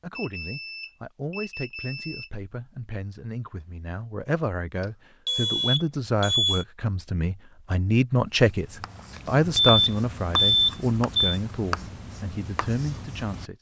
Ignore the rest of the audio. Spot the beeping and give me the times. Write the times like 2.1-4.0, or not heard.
0.1-2.3, 4.8-6.7, 9.6-11.4.